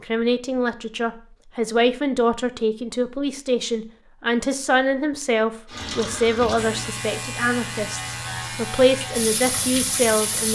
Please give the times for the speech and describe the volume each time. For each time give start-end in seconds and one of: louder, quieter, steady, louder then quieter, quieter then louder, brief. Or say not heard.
0.0-10.4 steady.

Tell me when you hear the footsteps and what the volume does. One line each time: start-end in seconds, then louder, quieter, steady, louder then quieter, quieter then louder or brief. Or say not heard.
not heard.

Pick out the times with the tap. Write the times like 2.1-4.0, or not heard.
5.7-10.4.